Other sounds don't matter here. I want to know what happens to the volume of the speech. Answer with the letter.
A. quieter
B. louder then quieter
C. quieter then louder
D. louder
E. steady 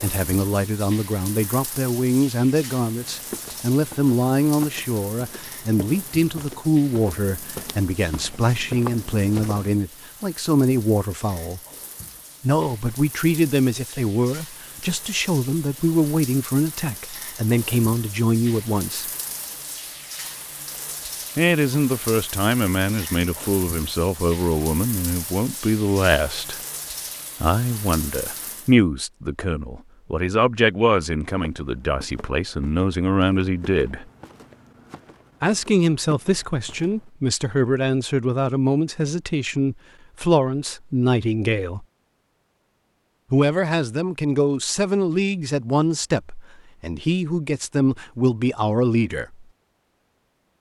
E.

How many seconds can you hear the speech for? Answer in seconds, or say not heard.
43 s.